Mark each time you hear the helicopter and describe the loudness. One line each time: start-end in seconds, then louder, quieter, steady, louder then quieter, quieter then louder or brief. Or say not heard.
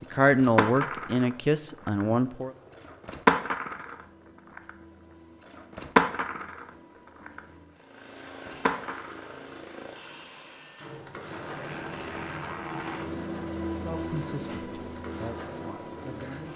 0.0-16.5 louder.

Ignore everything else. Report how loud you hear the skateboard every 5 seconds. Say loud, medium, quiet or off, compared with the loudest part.
loud, loud, quiet, quiet.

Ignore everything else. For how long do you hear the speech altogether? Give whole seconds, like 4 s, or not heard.
5 s.